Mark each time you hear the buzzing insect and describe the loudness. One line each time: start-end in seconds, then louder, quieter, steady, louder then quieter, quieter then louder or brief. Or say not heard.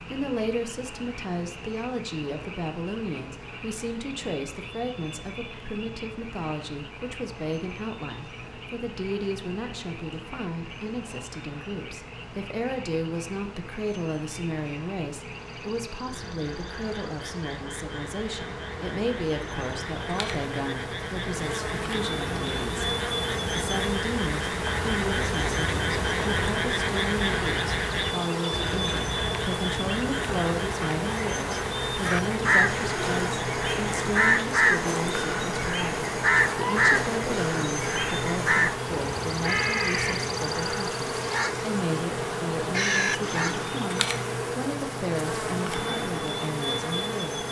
0.0-47.4 louder.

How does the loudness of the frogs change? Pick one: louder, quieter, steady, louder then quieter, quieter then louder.
louder.